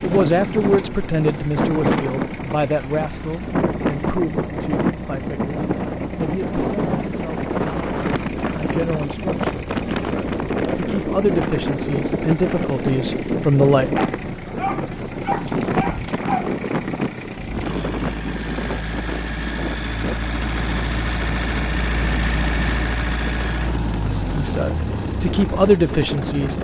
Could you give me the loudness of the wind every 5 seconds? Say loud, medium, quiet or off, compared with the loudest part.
loud, loud, loud, loud, medium, medium.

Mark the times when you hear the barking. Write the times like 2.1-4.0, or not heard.
13.9-16.5.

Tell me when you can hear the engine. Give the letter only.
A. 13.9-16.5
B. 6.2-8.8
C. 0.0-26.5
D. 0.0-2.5
C.